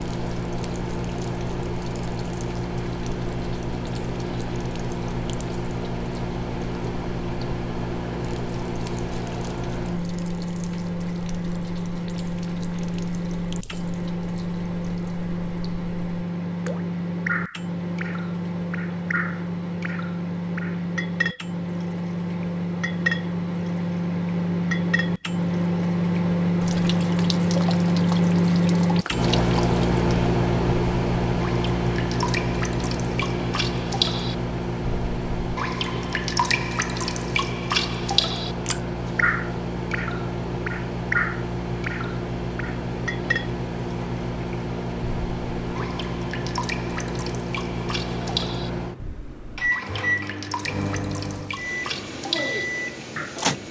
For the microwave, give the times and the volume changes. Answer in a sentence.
You can hear the microwave from 0.0 to 53.6 s, getting louder then quieter.